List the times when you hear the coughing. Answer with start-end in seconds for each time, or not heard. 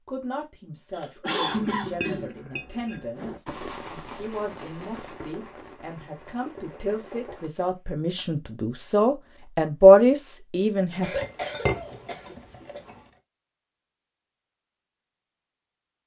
0.9-2.4, 11.0-12.8.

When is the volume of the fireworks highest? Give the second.
4 s.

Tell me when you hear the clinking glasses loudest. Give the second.
12 s.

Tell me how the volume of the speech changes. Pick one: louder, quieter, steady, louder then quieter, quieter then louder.
louder.